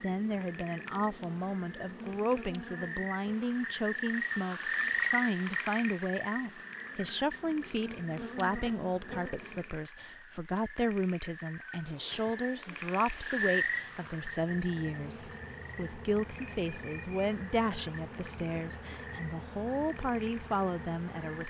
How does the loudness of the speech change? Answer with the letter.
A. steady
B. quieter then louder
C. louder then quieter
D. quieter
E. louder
A.